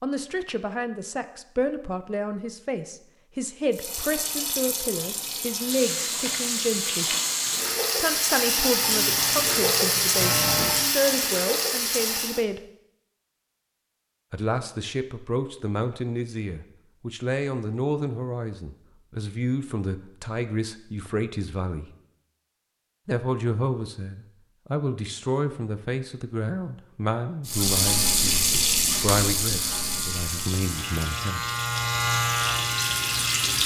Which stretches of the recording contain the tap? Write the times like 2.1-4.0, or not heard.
3.7-12.4, 27.4-33.6.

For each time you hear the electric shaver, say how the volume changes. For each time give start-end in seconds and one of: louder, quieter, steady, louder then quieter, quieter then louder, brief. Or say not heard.
8.7-10.9 brief
29.5-33.6 louder then quieter.